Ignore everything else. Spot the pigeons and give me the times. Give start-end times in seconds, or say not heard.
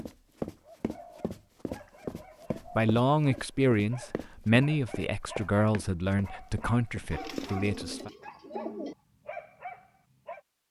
0.6-2.9, 7.1-8.9.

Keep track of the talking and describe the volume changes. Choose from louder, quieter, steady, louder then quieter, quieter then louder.
quieter.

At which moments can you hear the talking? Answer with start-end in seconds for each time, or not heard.
2.6-8.1.